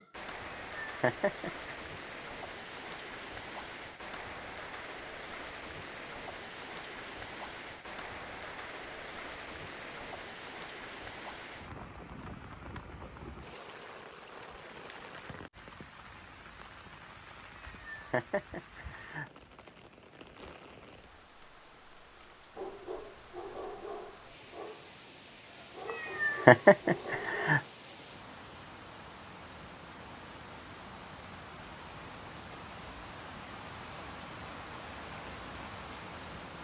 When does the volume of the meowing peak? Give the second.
27 s.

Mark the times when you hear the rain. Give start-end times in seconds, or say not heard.
0.0-36.5.